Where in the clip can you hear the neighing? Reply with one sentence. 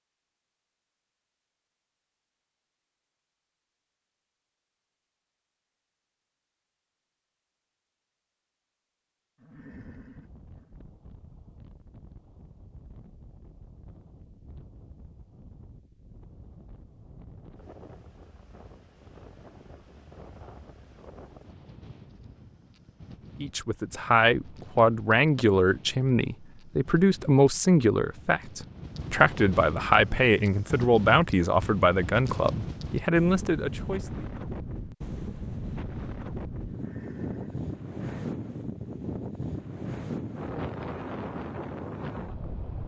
The neighing can be heard from 9.3 to 10.8 s and from 36.6 to 38.2 s.